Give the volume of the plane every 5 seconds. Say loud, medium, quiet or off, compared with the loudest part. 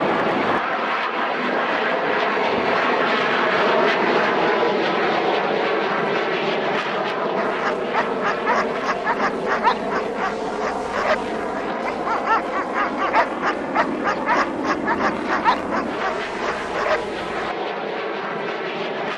loud, loud, medium, medium.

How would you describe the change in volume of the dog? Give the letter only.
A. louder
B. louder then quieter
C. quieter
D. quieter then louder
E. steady
E.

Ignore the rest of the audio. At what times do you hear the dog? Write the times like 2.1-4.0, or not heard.
7.3-17.6.